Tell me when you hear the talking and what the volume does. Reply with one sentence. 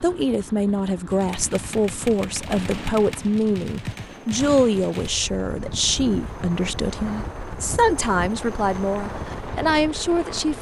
You can hear the talking from 0.0 to 10.5 s, at a steady volume.